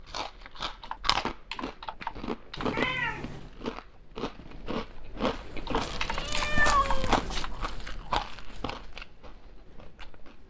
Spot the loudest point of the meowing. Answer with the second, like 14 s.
7 s.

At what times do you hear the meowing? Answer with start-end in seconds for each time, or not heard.
2.5-3.5, 5.8-7.5.